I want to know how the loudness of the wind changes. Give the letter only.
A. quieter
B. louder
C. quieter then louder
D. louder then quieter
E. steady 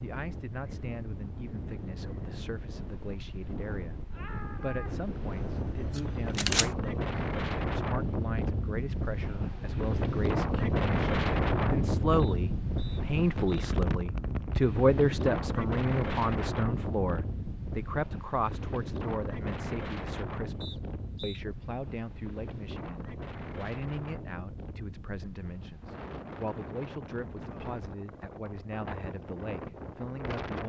D.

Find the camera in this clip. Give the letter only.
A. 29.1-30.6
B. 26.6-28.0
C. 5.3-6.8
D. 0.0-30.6
C.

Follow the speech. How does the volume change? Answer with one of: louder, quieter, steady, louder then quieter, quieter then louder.
louder then quieter.